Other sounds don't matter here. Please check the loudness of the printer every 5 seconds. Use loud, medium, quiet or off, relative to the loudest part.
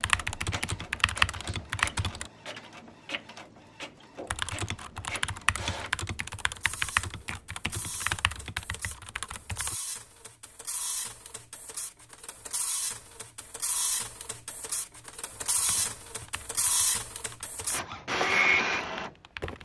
quiet, quiet, medium, loud.